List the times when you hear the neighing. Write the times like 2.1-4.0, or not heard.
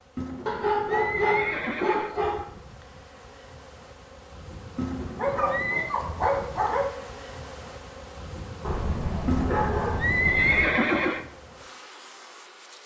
0.1-2.1, 4.8-5.9, 9.2-11.2.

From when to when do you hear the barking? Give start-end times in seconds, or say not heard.
0.5-2.5, 5.2-6.8, 8.6-10.7.